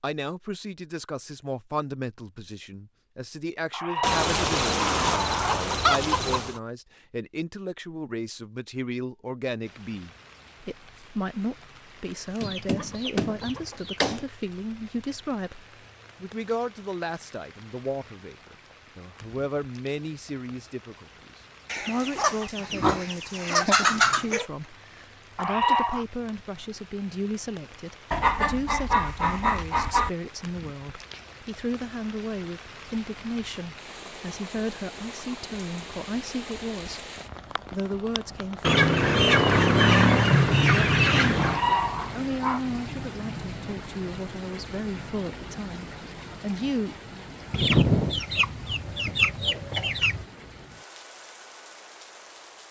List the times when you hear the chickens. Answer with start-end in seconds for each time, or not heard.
4.0-6.6, 12.4-14.2, 21.6-24.4, 28.1-30.1, 38.6-41.6, 47.5-50.2.